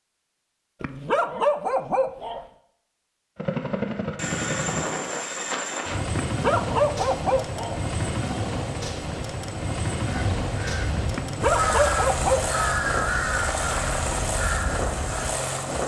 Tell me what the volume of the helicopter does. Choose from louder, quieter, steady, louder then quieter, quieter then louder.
steady.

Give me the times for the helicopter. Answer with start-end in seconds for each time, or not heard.
3.4-15.8.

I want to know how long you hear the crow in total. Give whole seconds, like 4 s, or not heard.
5 s.